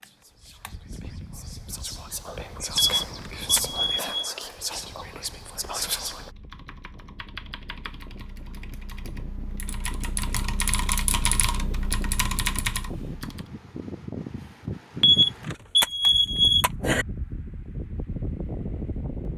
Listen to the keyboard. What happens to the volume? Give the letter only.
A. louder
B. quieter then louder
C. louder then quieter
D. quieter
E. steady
A.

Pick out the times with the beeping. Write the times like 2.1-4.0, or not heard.
2.8-4.2, 15.0-17.1.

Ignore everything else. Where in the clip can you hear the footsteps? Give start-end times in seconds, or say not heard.
not heard.